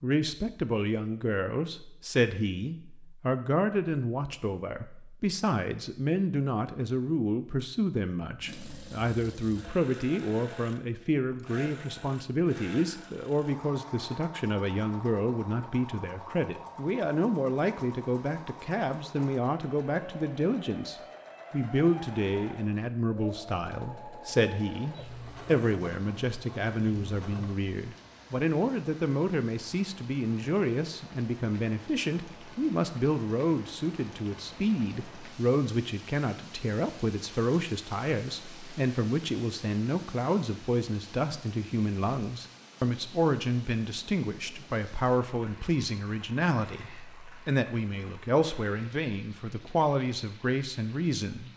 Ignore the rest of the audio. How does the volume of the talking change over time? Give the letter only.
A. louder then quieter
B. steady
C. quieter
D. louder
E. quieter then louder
B.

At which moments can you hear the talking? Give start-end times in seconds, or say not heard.
0.0-51.5.